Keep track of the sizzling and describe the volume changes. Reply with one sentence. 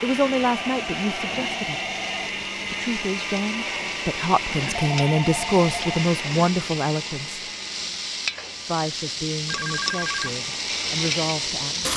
The loudness of the sizzling goes up.